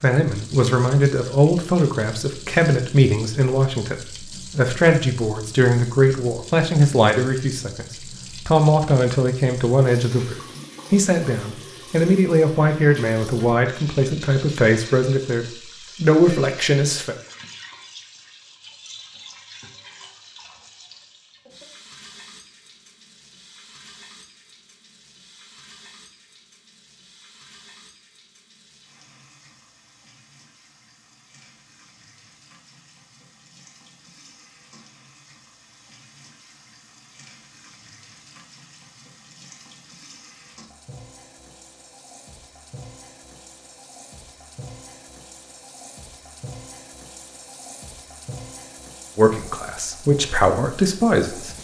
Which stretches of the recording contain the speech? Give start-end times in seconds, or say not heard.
0.0-17.1, 49.1-51.5.